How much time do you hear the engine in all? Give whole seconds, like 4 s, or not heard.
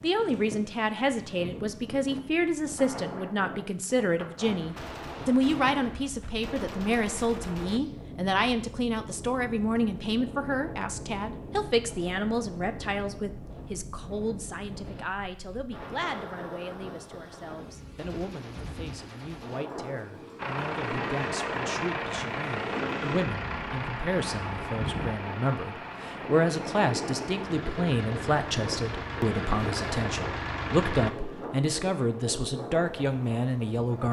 11 s.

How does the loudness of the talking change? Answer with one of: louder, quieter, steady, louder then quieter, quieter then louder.
quieter then louder.